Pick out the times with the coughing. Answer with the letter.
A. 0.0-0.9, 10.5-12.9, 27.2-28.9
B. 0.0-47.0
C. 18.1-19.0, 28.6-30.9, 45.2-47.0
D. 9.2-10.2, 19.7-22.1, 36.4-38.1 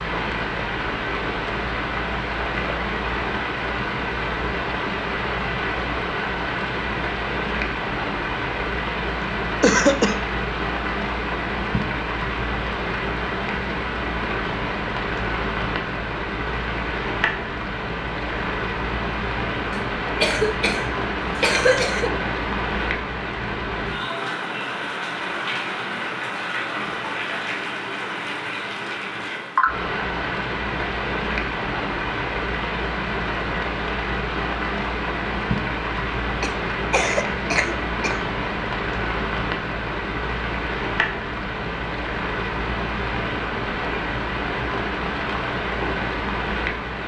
D.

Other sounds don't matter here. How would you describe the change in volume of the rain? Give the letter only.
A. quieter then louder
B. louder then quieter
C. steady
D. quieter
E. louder
C.